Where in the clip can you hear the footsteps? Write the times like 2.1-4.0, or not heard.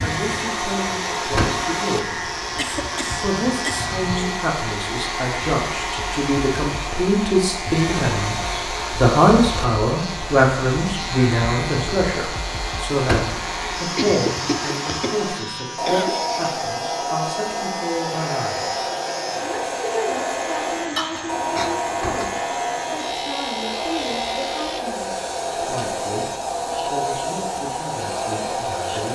not heard.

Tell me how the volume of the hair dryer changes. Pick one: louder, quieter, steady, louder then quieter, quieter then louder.
steady.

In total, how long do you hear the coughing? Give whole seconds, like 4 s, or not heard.
5 s.